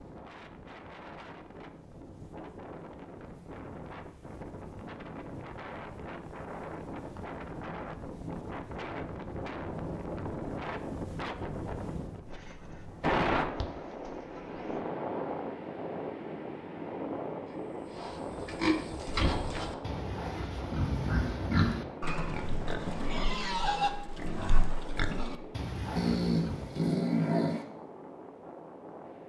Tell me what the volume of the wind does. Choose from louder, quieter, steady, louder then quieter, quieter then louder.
louder then quieter.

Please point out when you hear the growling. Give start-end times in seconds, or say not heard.
25.9-27.6.